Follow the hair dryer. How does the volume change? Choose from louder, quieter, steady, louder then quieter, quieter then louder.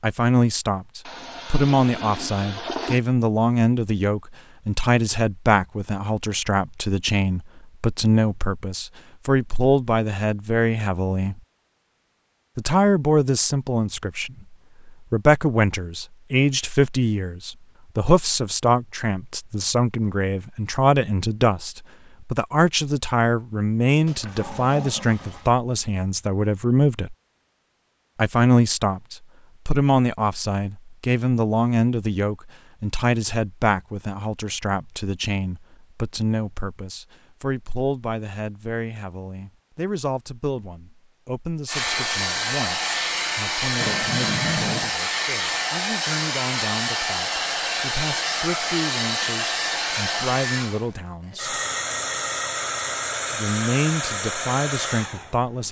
steady.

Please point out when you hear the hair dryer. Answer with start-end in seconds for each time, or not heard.
41.6-55.6.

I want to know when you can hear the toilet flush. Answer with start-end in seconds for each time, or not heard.
1.1-3.0, 24.1-25.5, 43.8-44.9.